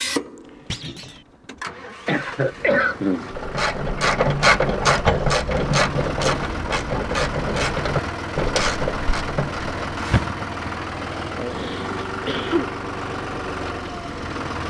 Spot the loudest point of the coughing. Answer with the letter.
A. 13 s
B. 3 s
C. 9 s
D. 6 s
B.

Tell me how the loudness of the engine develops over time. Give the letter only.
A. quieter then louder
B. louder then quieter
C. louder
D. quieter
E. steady
C.